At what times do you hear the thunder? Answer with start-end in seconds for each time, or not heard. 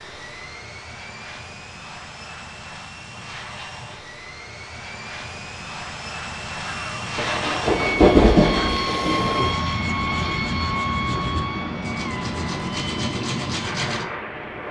7.7-9.6.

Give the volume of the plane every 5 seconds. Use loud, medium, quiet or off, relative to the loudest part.
medium, loud, loud.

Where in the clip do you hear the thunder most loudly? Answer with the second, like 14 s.
8 s.